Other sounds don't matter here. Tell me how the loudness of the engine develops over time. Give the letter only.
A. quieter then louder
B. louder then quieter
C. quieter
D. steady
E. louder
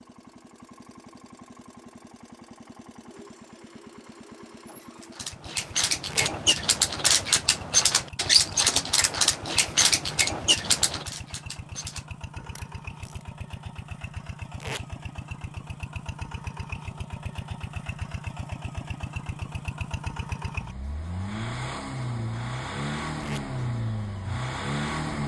E.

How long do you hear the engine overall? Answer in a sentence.
You can hear the engine for 25 seconds altogether.